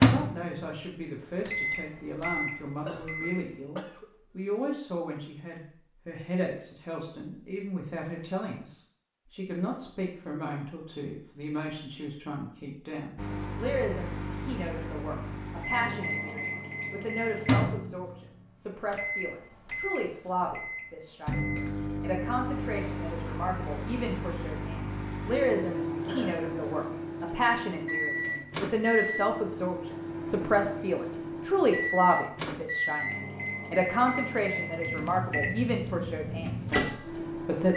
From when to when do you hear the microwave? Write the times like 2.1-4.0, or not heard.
0.0-3.5, 13.2-37.7.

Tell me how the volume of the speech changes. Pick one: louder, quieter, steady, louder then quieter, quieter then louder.
louder.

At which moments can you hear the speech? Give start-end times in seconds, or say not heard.
0.1-37.7.